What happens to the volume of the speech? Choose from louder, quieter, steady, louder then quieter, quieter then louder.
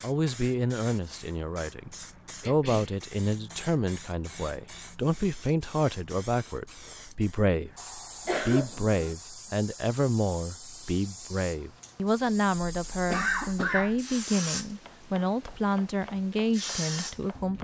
steady.